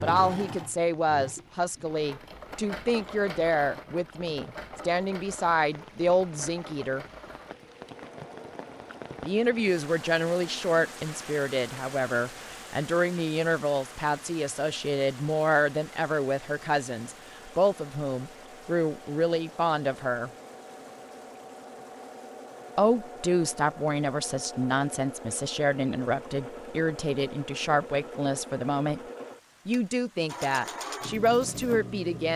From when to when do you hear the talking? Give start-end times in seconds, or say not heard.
0.0-7.0, 9.2-20.3, 22.8-29.0, 29.6-32.3.